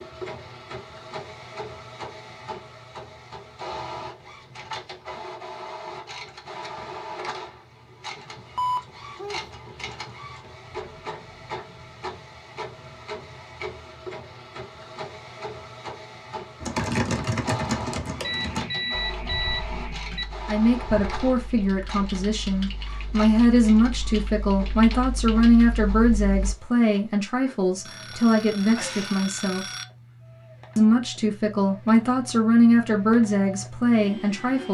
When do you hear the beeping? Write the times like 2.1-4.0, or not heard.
8.6-9.4, 18.2-20.2, 27.9-29.9.